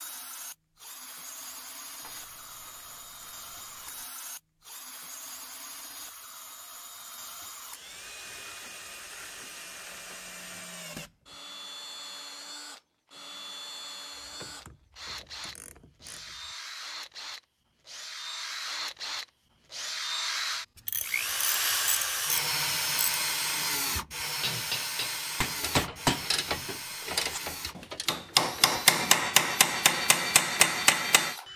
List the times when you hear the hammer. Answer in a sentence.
The hammer can be heard from 23.6 to 31.4 s.